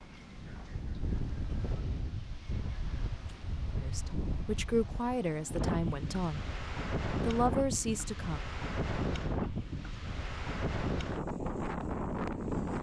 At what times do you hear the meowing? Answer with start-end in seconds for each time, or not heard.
not heard.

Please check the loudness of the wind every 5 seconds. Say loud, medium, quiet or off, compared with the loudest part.
medium, loud, loud.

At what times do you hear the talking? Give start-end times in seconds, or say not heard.
3.8-6.5, 7.2-8.4.